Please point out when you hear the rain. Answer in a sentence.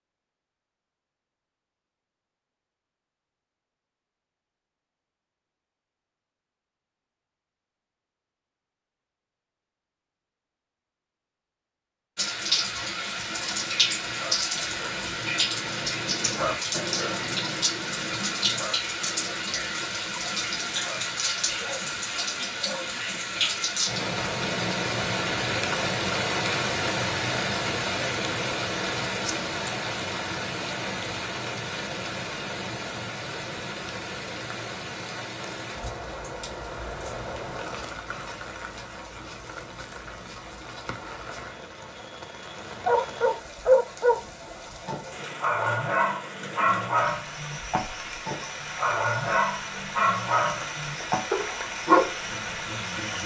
The rain can be heard from 12.2 to 53.2 s.